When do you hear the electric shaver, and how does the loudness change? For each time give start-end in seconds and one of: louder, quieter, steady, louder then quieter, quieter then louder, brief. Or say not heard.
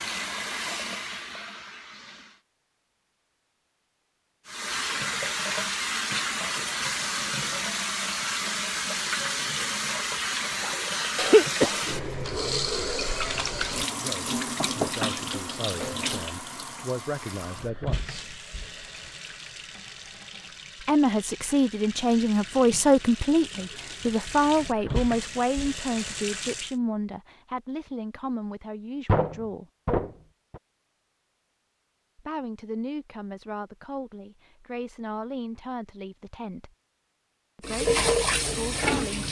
not heard.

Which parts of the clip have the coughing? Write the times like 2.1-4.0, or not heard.
11.2-11.8.